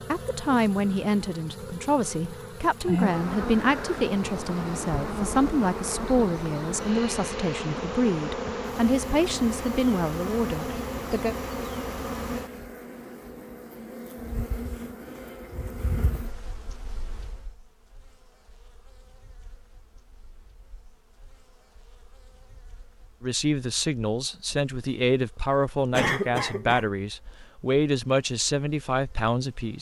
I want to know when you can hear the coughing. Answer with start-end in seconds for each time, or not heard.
25.9-26.9.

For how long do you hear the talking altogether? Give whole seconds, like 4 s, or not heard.
18 s.